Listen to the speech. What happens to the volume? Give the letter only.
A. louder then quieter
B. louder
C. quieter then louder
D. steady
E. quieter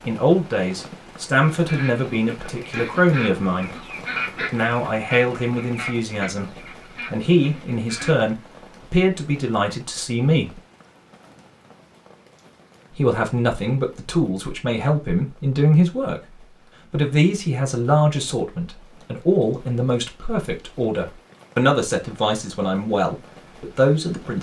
D.